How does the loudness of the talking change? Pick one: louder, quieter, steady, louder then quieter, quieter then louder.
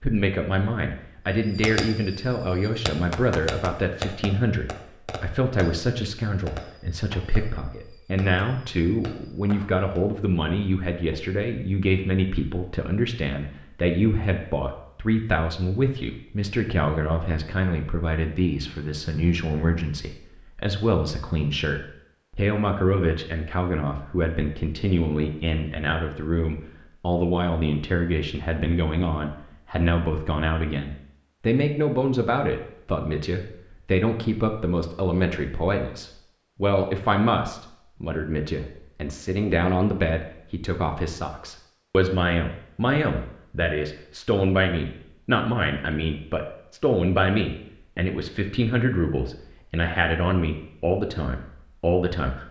steady.